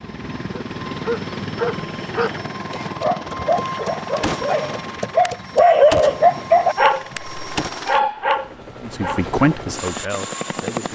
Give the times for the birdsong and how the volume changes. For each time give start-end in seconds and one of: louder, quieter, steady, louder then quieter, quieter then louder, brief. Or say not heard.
not heard.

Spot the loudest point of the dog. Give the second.
6 s.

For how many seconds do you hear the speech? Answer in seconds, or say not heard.
2 s.